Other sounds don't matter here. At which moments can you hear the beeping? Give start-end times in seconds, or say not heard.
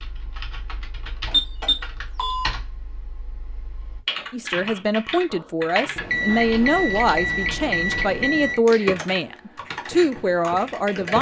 1.2-2.5, 6.0-8.6.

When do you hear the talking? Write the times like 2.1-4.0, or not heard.
4.3-11.1.